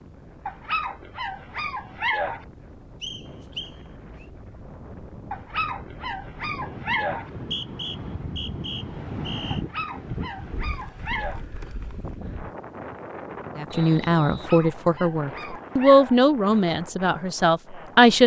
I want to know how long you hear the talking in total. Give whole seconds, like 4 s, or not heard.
5 s.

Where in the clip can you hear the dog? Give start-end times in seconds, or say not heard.
0.5-2.5, 5.3-7.3, 9.5-11.4, 14.4-16.2.